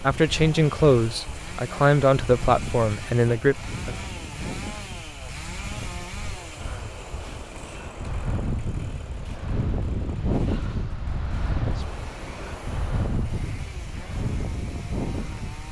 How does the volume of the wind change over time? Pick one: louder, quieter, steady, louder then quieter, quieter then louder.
louder.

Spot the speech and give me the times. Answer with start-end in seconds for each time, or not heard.
0.0-4.0.